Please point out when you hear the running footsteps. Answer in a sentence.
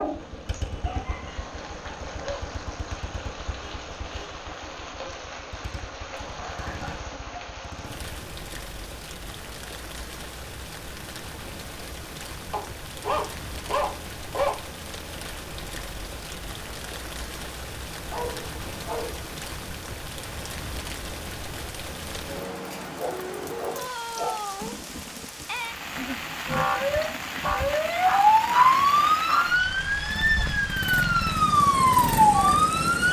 You can't hear the running footsteps here.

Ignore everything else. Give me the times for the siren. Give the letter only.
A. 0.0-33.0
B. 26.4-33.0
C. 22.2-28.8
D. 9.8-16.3
B.